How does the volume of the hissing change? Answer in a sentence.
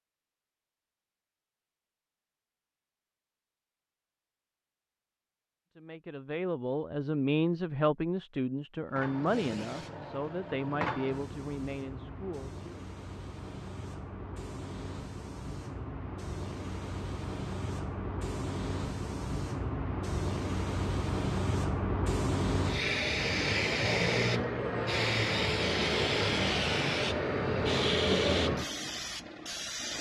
The loudness of the hissing goes up.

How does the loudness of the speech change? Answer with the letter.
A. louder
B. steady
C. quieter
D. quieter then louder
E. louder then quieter
C.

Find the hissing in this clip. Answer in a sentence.
The hissing can be heard from 8.9 to 29.9 s.